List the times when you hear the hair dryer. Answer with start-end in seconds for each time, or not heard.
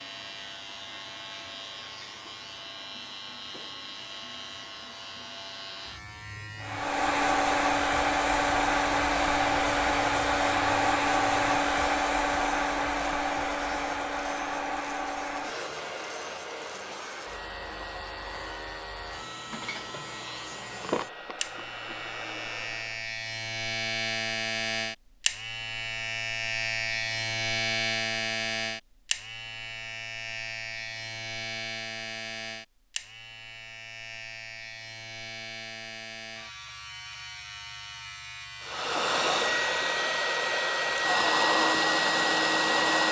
6.6-23.1, 38.6-43.0.